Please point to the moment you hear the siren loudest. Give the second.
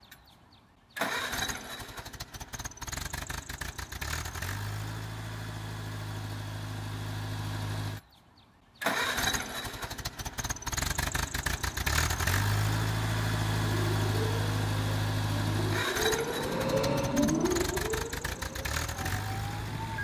17 s.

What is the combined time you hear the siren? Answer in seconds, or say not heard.
6 s.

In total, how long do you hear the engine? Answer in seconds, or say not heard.
20 s.